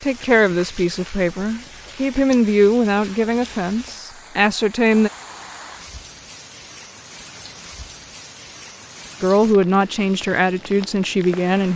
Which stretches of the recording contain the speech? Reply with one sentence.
The speech can be heard from 0.0 to 5.1 s and from 9.2 to 11.7 s.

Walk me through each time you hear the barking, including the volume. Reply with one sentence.
The barking can't be heard in this clip.